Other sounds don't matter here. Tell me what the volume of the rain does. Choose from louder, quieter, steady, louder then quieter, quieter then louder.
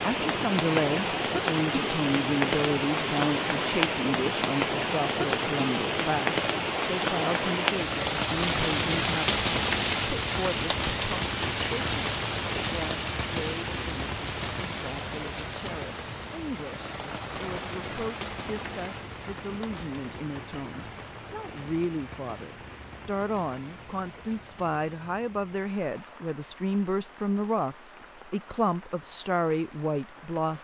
quieter.